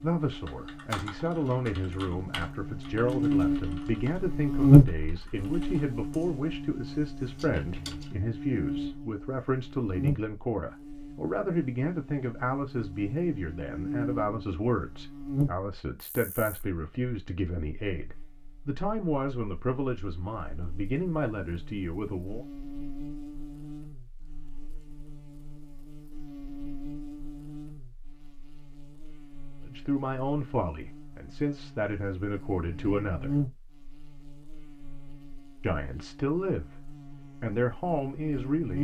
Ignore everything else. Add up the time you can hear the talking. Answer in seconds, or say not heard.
29 s.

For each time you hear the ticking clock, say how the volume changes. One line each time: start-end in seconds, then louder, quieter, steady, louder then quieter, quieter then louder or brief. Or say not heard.
not heard.